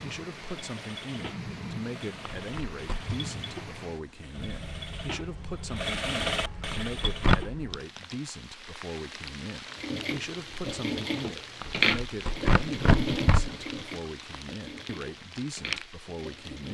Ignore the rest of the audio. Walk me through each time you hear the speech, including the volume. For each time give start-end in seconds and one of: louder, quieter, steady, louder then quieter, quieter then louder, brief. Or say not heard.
0.0-16.6 steady.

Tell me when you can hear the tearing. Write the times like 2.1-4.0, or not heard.
2.4-3.1, 6.3-7.5, 11.6-13.6.